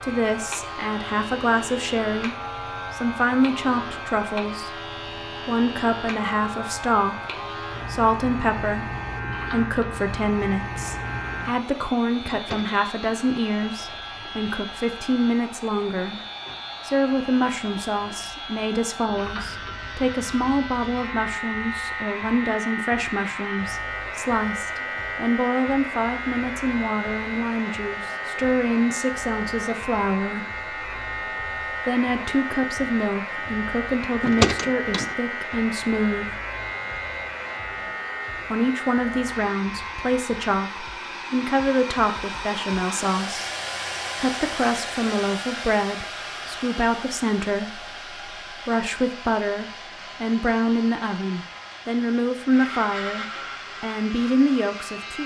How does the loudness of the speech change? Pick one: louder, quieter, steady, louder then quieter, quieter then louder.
steady.